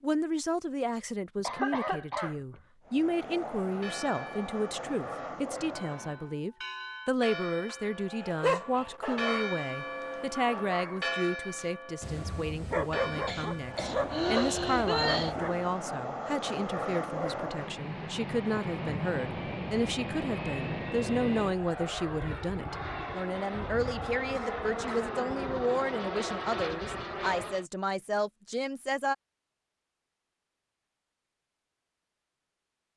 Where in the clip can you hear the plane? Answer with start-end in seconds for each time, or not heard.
2.9-6.3, 13.7-27.6.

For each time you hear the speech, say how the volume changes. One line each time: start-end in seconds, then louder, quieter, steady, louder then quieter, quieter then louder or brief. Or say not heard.
0.0-29.1 steady.